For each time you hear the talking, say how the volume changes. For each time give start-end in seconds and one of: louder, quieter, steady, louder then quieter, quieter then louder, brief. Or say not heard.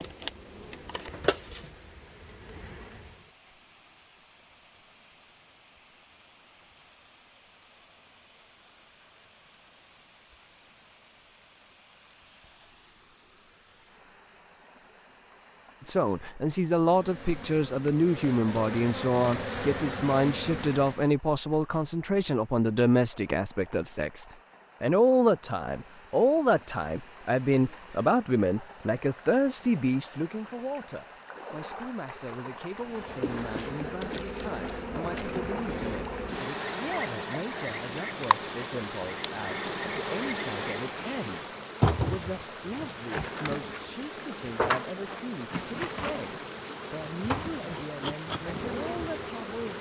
15.8-49.7 quieter.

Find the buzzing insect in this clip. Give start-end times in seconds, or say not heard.
0.0-3.3, 16.8-21.1, 32.8-49.7.